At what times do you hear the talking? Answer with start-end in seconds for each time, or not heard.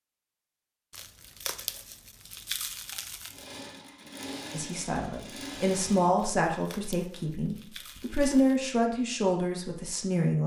4.5-10.4.